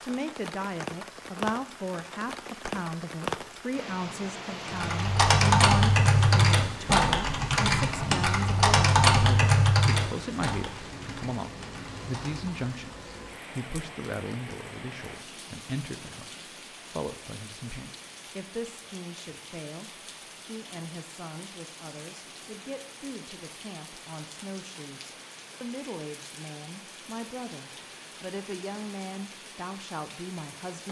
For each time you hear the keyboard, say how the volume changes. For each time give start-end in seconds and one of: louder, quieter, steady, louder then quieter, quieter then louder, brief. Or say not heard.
4.7-12.7 quieter.